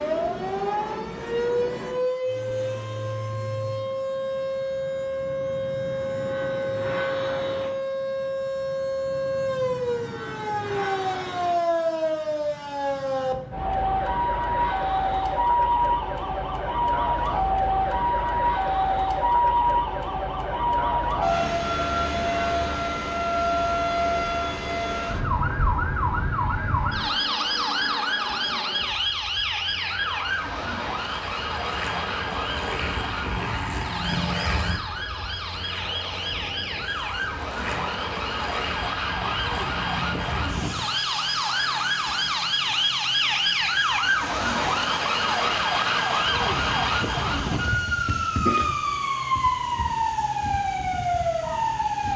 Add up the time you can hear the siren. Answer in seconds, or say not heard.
52 s.